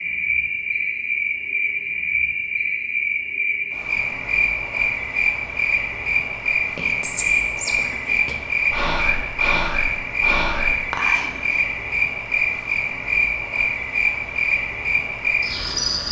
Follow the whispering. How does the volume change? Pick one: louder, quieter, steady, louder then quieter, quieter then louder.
quieter then louder.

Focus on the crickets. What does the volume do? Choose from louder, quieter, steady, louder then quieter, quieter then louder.
steady.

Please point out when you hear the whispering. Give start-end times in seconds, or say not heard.
6.8-11.4.